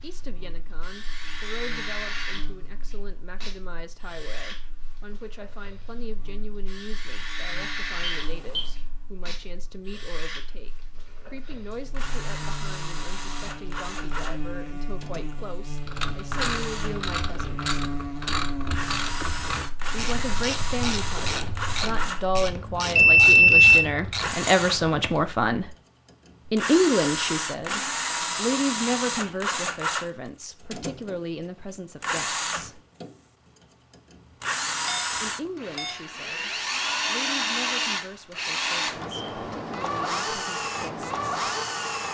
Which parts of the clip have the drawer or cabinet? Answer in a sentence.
You can't hear the drawer or cabinet here.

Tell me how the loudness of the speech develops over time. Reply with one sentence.
The volume of the speech goes up, then down.